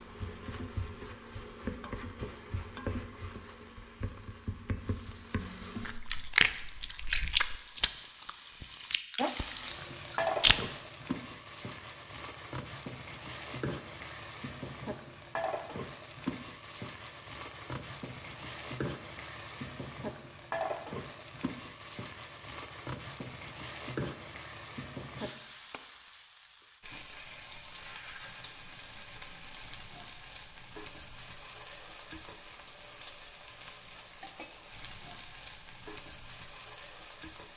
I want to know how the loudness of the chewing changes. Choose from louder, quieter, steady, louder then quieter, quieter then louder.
quieter.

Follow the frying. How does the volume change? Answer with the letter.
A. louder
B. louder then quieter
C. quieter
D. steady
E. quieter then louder
B.